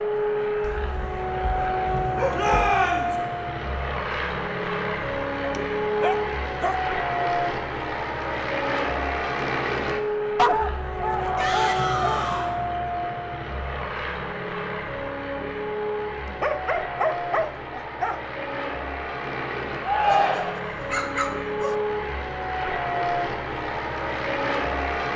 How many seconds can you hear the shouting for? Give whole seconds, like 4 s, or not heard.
3 s.